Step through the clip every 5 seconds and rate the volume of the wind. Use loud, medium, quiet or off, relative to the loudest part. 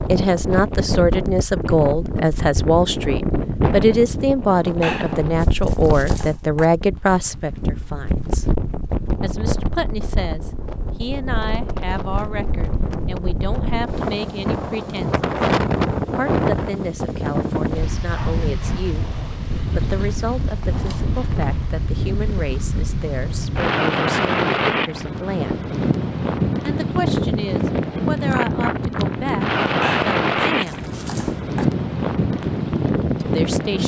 loud, medium, medium, loud, loud, loud, loud.